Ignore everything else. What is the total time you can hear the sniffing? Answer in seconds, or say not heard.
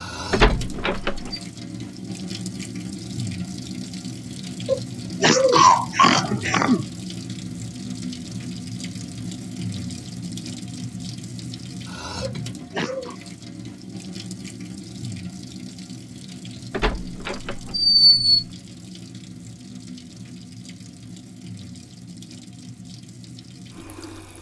3 s.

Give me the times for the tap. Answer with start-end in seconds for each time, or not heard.
0.0-24.3.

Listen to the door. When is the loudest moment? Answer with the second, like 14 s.
18 s.